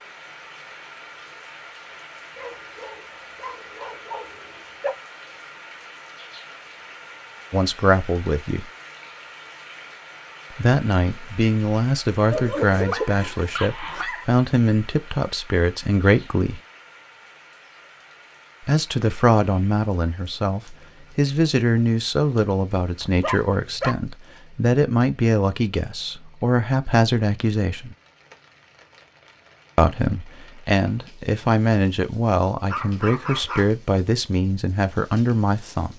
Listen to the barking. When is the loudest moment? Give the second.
13 s.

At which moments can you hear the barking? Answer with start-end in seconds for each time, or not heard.
2.4-5.0, 12.3-14.2, 23.0-23.9, 32.6-33.7.